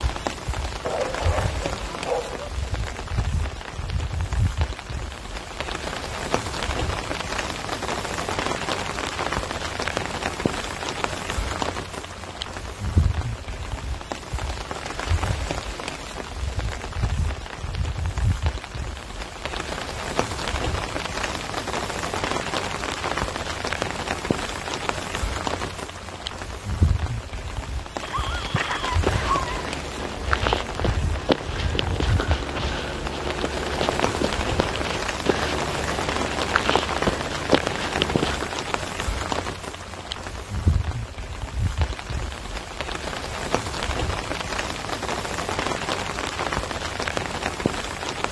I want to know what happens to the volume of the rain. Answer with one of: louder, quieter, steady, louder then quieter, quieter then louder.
steady.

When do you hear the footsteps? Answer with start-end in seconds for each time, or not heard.
27.9-38.5.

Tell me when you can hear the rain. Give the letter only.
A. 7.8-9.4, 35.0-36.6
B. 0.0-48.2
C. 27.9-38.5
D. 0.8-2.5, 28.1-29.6
B.